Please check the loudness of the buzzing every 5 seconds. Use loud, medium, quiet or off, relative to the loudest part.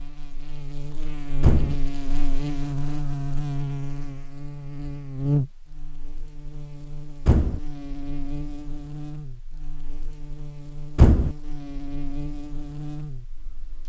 loud, loud, medium.